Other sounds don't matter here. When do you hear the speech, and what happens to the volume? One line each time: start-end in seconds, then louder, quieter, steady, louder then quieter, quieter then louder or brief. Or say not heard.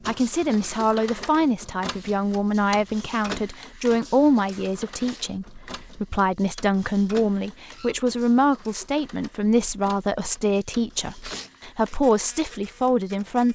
0.1-13.5 steady.